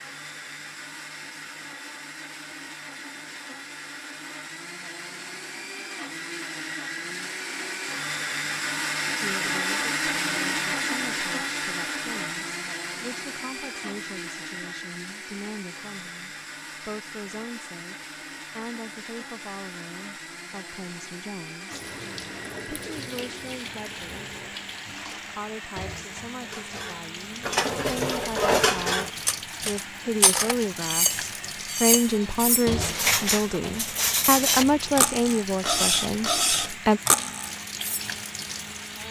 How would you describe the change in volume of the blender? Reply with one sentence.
The volume of the blender goes up, then down.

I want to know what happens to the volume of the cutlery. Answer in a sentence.
The loudness of the cutlery stays about the same.